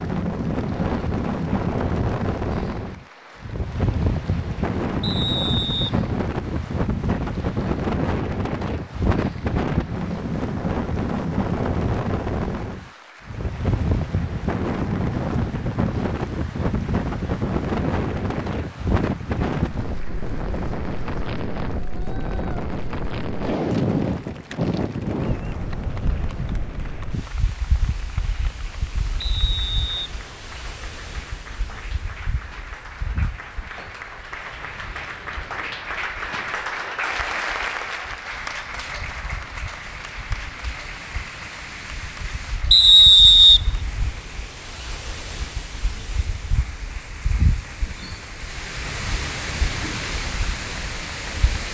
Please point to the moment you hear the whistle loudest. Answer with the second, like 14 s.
43 s.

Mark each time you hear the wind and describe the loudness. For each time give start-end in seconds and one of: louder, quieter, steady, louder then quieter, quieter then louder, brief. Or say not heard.
0.0-51.6 quieter then louder.